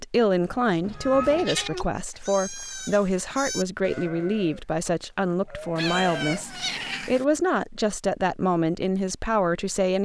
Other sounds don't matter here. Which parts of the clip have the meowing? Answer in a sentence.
You can hear the meowing from 0.9 to 1.9 s and from 5.8 to 7.2 s.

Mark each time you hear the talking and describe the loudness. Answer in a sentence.
You can hear the talking from 0.0 to 9.9 s, at a steady volume.